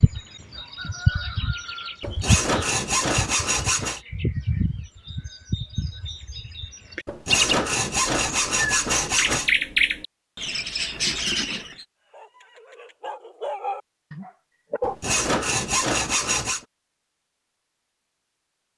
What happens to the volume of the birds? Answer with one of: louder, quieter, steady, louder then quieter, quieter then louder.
quieter then louder.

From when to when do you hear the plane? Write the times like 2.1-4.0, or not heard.
not heard.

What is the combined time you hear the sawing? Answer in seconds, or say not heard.
6 s.